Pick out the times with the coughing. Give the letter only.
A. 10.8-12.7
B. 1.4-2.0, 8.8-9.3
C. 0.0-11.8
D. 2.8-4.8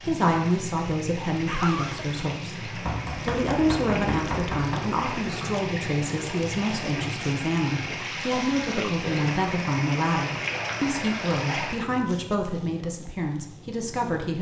B.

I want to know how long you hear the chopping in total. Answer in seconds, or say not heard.
2 s.